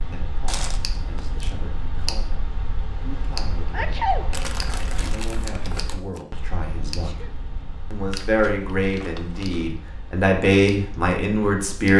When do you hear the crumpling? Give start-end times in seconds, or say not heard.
0.5-1.5, 4.3-6.2, 8.1-9.8.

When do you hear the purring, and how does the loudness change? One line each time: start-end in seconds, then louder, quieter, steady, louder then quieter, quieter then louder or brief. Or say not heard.
not heard.